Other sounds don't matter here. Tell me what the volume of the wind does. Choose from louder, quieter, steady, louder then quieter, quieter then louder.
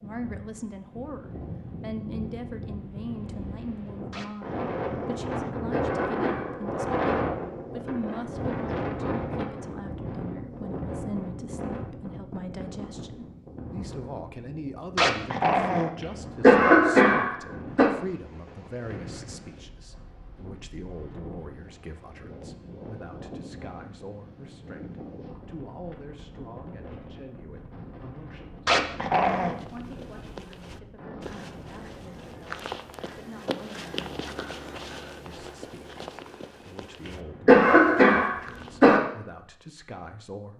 quieter.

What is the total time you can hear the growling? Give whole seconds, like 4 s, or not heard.
3 s.